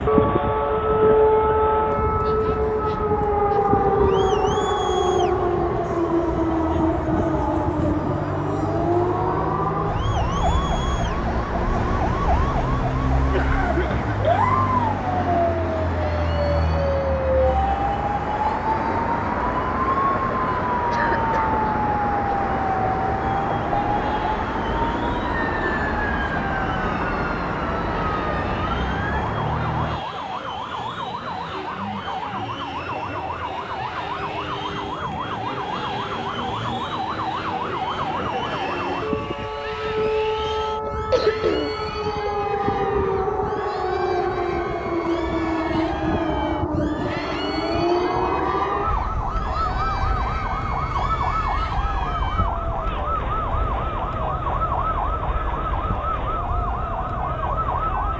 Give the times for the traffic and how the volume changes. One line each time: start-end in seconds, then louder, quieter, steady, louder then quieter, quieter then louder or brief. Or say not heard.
0.0-30.1 louder.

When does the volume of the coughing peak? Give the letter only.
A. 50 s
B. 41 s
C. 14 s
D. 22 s
B.